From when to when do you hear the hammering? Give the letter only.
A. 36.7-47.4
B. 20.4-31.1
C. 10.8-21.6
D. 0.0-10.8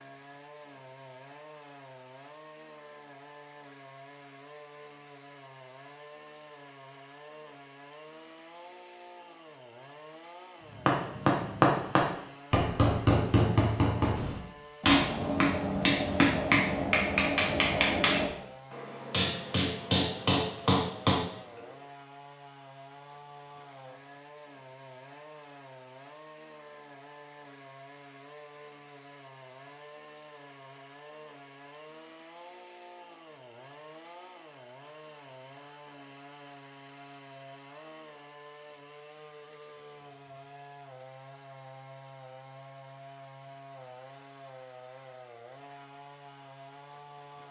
C.